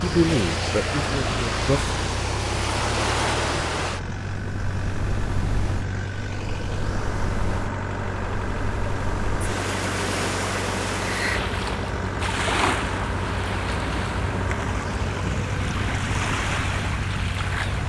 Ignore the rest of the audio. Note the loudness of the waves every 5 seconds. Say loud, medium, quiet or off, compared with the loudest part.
loud, medium, loud, loud.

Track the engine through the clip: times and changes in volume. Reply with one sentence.
The engine can be heard from 0.0 to 17.8 s, at a steady volume.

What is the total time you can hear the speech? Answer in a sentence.
The speech can be heard for 2 seconds in total.